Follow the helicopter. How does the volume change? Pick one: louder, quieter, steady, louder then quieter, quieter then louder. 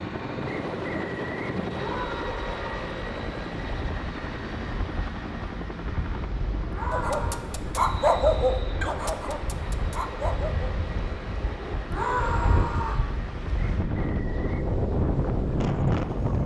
quieter.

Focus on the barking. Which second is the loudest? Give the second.
8 s.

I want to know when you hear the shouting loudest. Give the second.
12 s.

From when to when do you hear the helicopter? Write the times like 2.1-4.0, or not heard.
0.0-16.4.